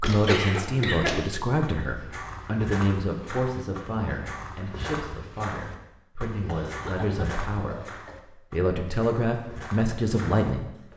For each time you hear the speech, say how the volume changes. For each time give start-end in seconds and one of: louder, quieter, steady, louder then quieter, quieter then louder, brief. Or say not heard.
0.0-10.7 quieter then louder.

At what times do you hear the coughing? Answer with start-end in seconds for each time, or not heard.
0.2-1.2, 6.5-8.2.